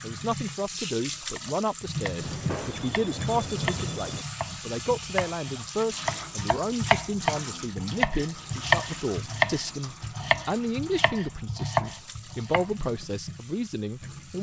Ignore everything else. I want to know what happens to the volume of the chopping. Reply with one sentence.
The volume of the chopping goes up, then down.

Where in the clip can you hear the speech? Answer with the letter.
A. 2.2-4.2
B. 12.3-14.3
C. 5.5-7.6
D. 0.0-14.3
D.